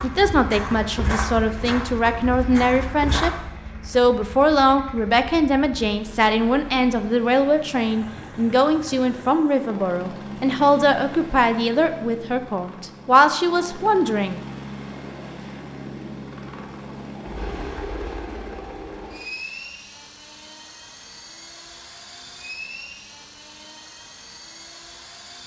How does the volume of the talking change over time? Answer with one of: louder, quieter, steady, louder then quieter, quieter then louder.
steady.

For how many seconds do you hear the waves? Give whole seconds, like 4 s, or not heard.
not heard.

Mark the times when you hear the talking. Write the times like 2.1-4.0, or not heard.
0.0-14.4.